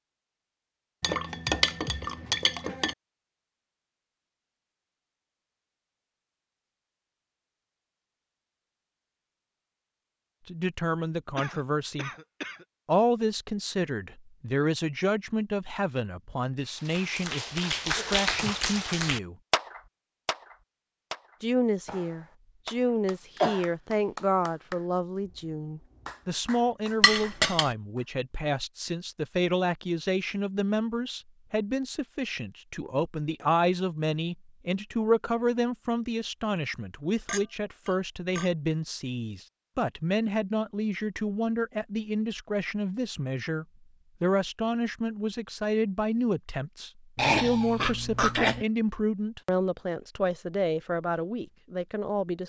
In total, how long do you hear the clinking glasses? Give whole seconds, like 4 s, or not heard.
4 s.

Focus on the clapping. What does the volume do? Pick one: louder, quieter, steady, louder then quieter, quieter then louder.
quieter.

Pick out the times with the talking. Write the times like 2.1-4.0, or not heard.
10.4-12.1, 12.8-19.4, 21.4-52.4.